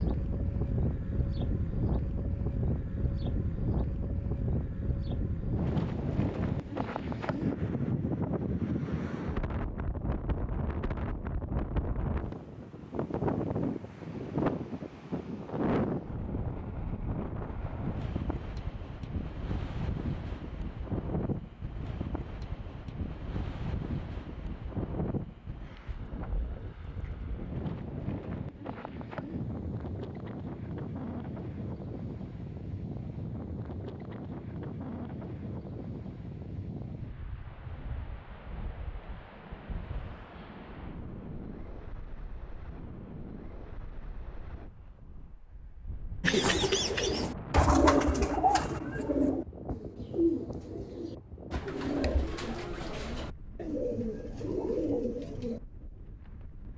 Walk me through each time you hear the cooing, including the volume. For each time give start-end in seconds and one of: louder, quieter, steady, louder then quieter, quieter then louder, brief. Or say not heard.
46.2-55.6 quieter.